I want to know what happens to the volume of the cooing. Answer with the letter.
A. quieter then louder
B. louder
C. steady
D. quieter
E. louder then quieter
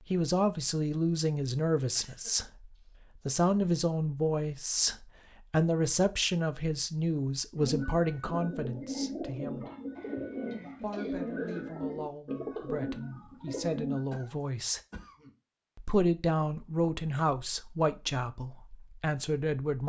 C.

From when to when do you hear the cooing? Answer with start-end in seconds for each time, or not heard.
7.5-14.0.